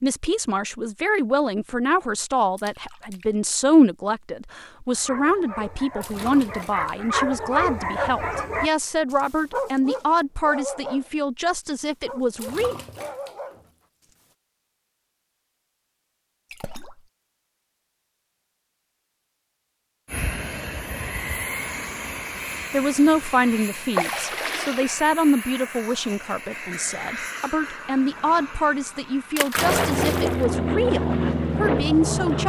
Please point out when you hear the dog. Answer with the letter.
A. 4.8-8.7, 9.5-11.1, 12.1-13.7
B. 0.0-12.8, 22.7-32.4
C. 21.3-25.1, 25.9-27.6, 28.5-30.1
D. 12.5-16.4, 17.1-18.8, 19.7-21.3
A.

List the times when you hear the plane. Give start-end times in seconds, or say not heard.
20.1-32.4.